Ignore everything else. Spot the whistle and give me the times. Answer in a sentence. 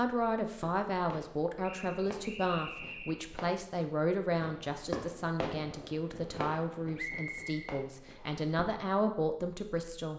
You can hear the whistle from 1.6 to 3.2 s and from 7.0 to 8.4 s.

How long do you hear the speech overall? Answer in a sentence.
You can hear the speech for 10 seconds altogether.